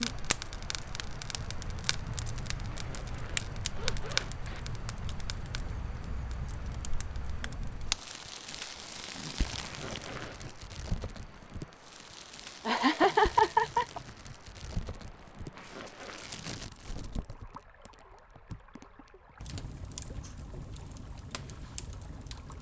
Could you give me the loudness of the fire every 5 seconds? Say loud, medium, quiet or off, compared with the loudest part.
loud, loud, medium, medium, medium.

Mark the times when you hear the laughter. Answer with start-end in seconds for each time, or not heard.
12.7-14.0.